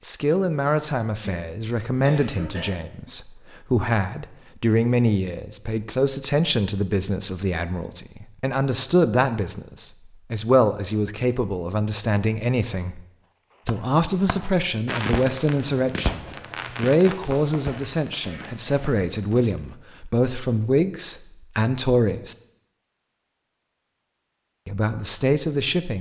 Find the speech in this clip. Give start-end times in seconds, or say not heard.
0.0-13.1, 13.7-22.4, 24.6-25.9.